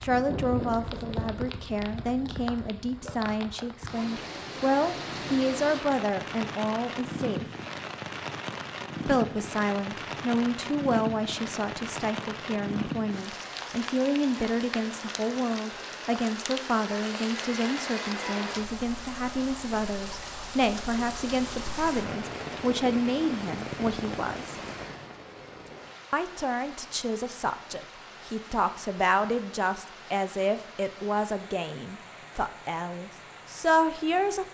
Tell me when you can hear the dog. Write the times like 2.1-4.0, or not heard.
not heard.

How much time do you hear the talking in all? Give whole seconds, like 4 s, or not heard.
31 s.